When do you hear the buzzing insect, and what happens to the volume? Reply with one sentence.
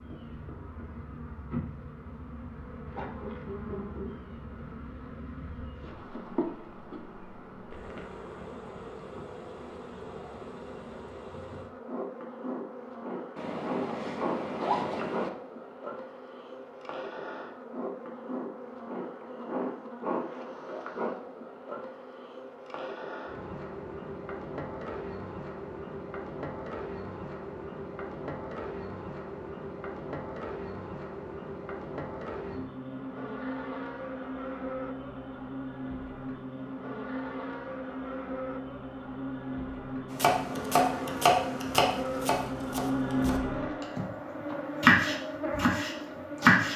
The buzzing insect can be heard from 0.0 to 46.7 s, getting louder.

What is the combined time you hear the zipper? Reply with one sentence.
The zipper can be heard for 2 seconds in total.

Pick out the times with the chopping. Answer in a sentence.
You can hear the chopping from 40.1 to 44.0 s and from 44.8 to 46.7 s.